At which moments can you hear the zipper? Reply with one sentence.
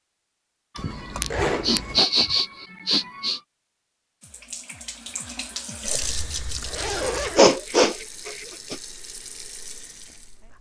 The zipper can be heard from 0.8 to 2.0 s and from 6.0 to 7.4 s.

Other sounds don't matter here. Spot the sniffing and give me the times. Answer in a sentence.
The sniffing can be heard from 0.8 to 3.4 s and from 7.3 to 8.8 s.